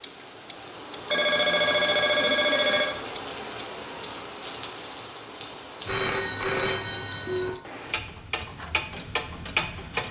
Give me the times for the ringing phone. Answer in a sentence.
The ringing phone can be heard from 1.1 to 3.0 s and from 5.8 to 7.5 s.